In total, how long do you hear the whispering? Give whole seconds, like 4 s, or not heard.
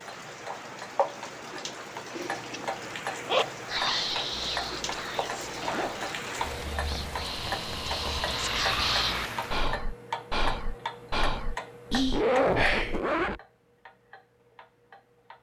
9 s.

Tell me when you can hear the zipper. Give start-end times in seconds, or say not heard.
2.1-3.5, 5.6-6.8, 12.1-13.4.